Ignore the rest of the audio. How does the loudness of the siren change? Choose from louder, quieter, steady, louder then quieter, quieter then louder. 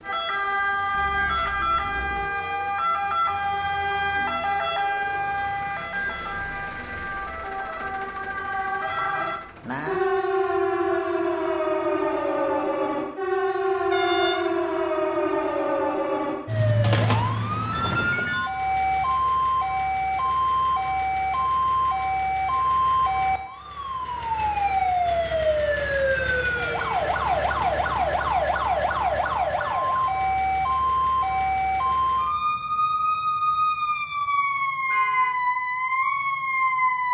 steady.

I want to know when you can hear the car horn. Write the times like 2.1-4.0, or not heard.
0.9-2.3, 13.9-14.6, 34.9-35.4.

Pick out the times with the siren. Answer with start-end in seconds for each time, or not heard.
0.0-37.0.